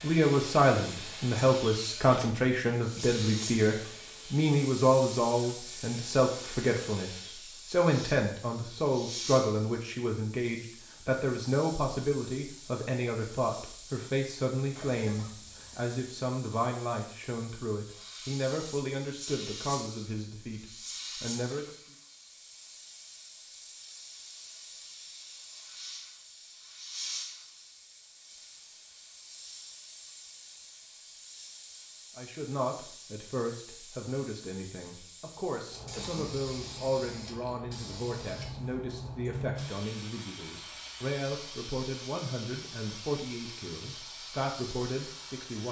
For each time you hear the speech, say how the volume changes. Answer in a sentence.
You can hear the speech from 0.0 to 21.8 s, getting quieter; and from 32.1 to 45.6 s, at a steady volume.